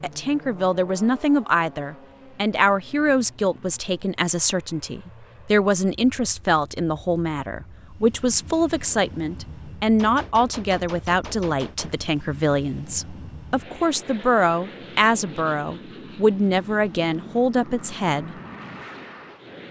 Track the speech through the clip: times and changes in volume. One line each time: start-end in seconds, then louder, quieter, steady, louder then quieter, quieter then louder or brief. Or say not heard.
0.0-18.4 steady.